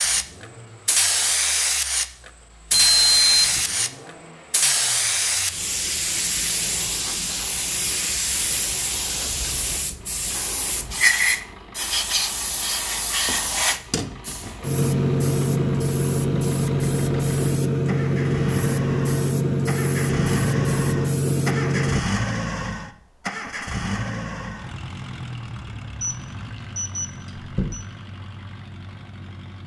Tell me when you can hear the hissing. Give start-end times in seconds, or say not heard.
0.0-22.0.